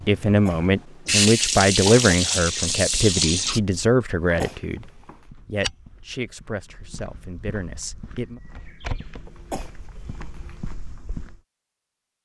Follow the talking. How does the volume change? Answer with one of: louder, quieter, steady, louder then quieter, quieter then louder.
quieter.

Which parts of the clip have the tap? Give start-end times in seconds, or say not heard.
0.0-3.6.